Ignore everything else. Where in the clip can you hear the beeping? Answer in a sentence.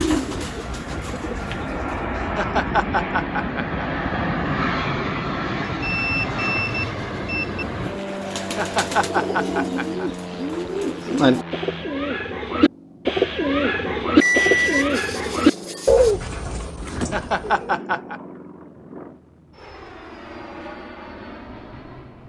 The beeping can be heard from 5.7 to 7.7 s and from 14.2 to 16.1 s.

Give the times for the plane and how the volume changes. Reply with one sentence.
The plane can be heard from 0.0 to 22.2 s, getting quieter.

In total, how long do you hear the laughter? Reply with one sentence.
The laughter can be heard for 5 seconds in total.